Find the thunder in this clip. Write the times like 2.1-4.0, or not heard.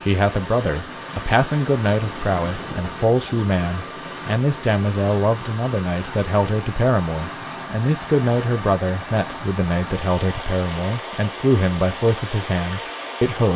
1.9-3.5.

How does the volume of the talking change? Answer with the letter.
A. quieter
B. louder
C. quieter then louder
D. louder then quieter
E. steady
E.